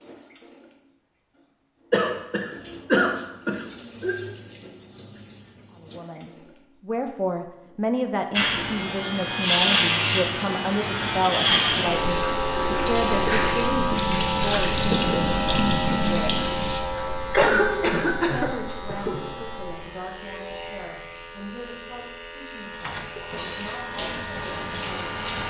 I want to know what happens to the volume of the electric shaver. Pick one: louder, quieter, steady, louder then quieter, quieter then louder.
quieter.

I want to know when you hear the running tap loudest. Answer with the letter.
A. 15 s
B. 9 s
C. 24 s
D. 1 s
A.